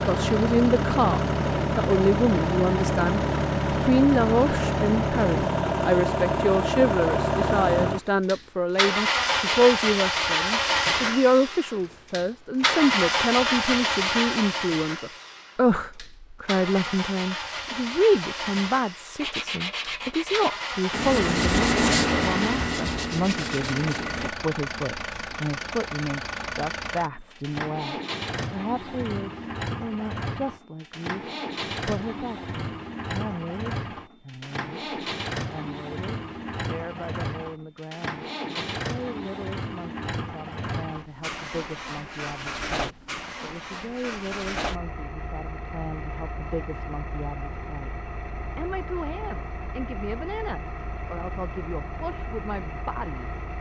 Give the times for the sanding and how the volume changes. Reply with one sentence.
The sanding can be heard from 19.1 to 24.3 s, getting louder then quieter.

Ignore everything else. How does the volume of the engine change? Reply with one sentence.
The loudness of the engine goes down.